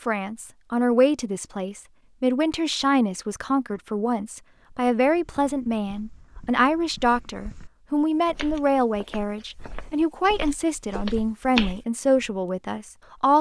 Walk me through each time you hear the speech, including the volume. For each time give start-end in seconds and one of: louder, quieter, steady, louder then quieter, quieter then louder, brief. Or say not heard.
0.0-13.3 steady.